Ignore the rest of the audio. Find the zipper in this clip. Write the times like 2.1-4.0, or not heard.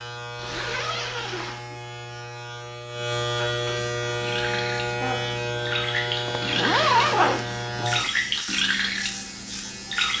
0.3-1.6, 6.2-8.1.